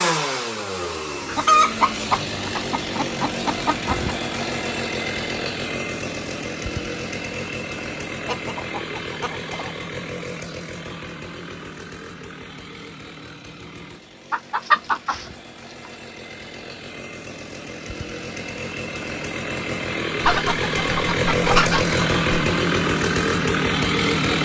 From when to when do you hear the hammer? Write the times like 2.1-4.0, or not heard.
not heard.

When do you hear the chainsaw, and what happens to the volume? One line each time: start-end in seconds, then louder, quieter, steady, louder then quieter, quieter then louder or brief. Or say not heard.
0.0-24.3 quieter then louder.